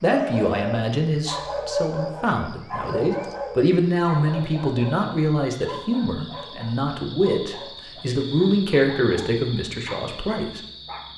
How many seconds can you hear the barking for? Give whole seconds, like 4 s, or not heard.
11 s.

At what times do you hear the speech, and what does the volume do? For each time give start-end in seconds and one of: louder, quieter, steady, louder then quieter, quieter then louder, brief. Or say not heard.
0.0-10.6 steady.